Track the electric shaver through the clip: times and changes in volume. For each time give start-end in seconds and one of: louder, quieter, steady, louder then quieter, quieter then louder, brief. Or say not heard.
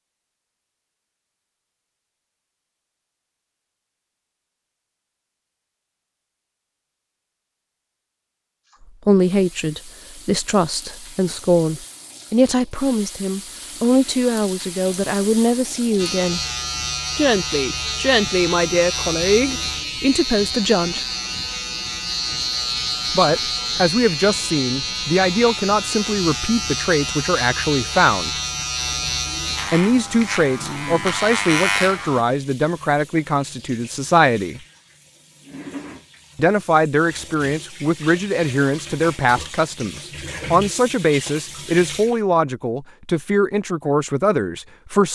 15.9-32.2 steady.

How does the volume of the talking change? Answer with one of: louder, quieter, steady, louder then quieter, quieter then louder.
steady.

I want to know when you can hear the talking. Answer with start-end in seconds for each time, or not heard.
9.1-16.4, 17.1-21.1, 23.1-28.3, 29.7-34.6, 36.4-45.0.